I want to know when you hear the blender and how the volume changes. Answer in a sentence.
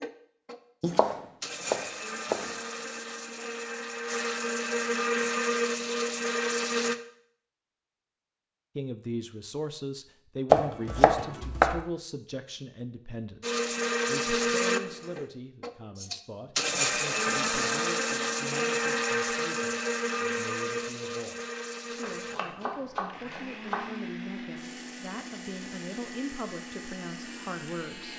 The blender can be heard from 0.0 to 7.0 s, getting louder; and from 13.4 to 28.1 s, getting quieter.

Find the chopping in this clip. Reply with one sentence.
The chopping can be heard from 0.8 to 2.5 s, from 10.5 to 11.8 s and from 22.0 to 23.9 s.